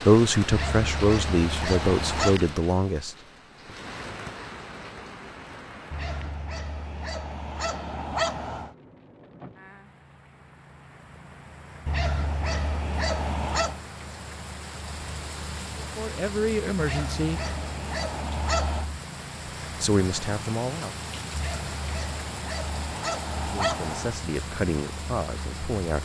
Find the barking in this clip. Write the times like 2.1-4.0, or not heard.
0.5-2.4, 5.9-8.8, 11.8-13.8, 16.8-18.9, 21.3-24.2.